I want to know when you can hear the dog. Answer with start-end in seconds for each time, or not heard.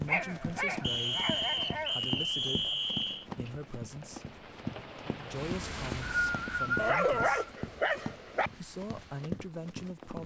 0.1-1.9, 6.8-8.5.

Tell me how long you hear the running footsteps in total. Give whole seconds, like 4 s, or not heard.
10 s.